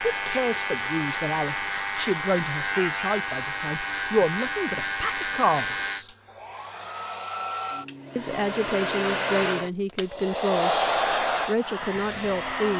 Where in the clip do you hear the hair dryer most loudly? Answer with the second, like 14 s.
11 s.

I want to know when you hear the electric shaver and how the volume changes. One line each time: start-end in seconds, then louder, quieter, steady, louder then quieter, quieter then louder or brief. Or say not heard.
0.0-6.0 steady.